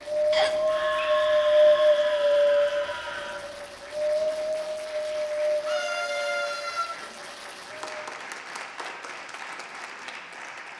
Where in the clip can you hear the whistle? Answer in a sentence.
The whistle can be heard from 0.3 to 1.1 s.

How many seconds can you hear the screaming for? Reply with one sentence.
You can hear the screaming for 4 seconds altogether.